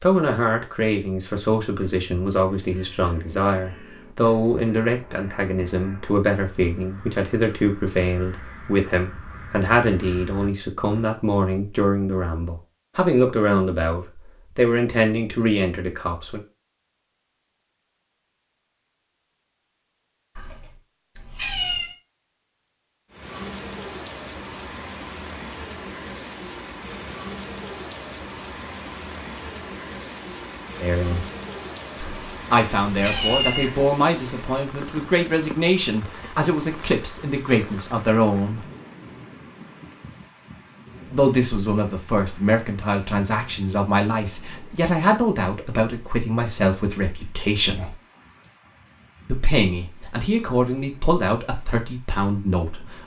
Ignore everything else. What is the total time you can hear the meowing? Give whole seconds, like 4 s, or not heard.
3 s.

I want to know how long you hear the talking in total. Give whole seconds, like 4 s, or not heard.
34 s.